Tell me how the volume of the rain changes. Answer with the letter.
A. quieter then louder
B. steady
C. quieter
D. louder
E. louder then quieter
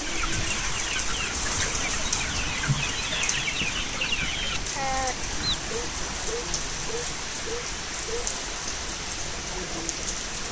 B.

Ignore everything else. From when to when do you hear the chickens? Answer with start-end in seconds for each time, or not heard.
0.0-5.5.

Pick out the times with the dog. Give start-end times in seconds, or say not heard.
5.7-8.3.